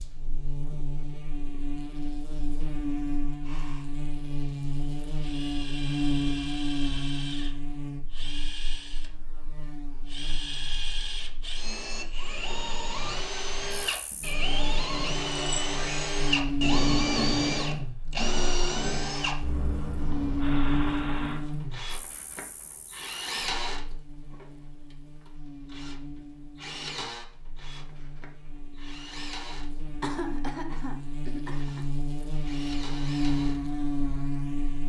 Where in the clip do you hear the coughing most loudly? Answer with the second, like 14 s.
30 s.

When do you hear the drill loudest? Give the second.
17 s.